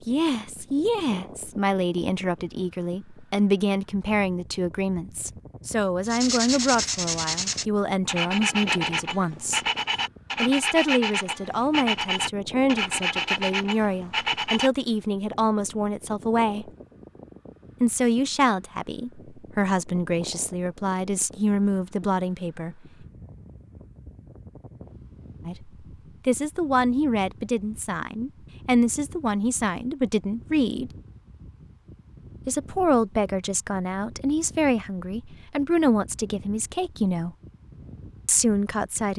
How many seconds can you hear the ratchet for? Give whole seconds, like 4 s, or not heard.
not heard.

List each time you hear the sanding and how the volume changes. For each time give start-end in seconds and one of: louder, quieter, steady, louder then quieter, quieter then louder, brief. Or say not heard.
6.0-14.7 steady.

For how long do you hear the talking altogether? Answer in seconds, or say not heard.
32 s.